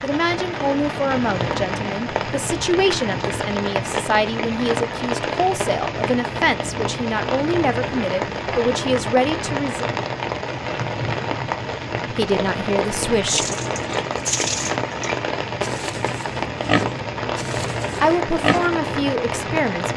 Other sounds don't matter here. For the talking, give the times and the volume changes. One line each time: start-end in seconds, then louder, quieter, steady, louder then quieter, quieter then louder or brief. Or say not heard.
0.0-9.8 steady
12.2-13.5 brief
18.0-19.9 brief.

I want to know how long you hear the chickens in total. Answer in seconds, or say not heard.
not heard.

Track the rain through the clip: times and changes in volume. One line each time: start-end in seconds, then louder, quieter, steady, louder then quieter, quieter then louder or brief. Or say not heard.
0.0-19.9 steady.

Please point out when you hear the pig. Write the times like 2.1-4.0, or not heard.
13.2-18.8.